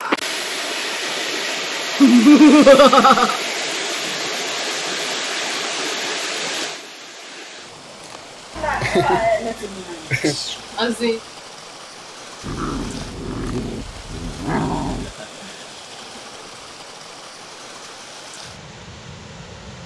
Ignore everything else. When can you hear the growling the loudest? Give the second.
15 s.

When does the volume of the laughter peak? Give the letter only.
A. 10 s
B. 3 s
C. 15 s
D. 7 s
B.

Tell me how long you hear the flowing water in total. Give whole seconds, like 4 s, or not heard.
20 s.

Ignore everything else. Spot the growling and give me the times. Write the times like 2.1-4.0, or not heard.
12.4-15.2.